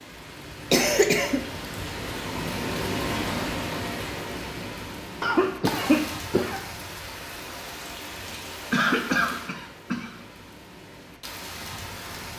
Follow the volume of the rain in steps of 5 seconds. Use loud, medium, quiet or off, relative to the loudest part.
loud, medium, medium.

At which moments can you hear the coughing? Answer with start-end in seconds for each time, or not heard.
0.7-1.4, 5.2-6.6, 8.2-10.2.